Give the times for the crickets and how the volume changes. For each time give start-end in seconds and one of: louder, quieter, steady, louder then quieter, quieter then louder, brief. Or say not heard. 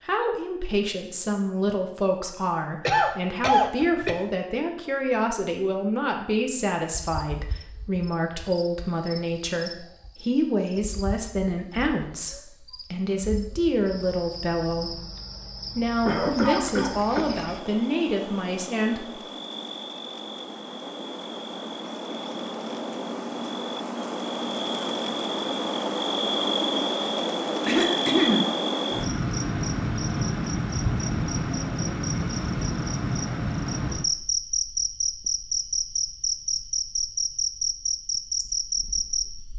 7.0-39.5 louder.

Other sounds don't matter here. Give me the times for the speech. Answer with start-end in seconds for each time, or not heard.
0.1-15.1, 15.8-19.2.